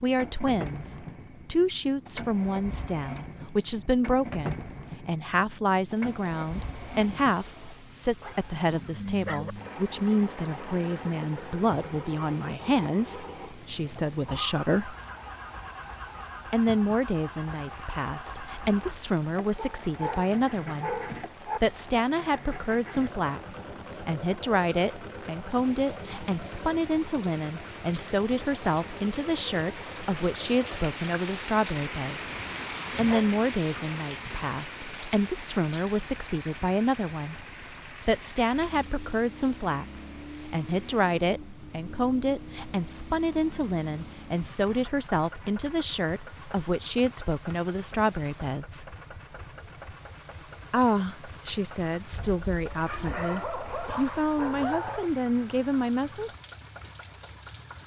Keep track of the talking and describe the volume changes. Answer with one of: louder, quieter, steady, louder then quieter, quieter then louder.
steady.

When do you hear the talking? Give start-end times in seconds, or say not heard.
0.0-14.9, 16.5-32.4, 33.0-48.9, 50.7-56.3.